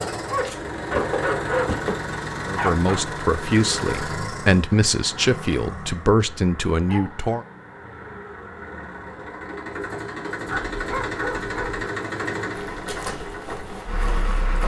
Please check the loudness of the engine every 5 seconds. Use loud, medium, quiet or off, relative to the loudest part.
loud, medium, loud.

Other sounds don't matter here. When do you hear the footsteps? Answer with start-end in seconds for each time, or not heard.
0.2-2.1, 12.5-14.6.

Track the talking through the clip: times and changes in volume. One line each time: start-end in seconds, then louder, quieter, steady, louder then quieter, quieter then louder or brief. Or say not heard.
2.5-7.5 steady.